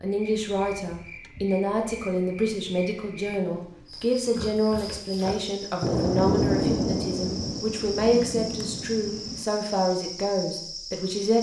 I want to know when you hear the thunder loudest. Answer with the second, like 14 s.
7 s.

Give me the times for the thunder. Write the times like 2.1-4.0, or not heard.
5.8-9.4.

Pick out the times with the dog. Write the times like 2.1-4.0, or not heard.
not heard.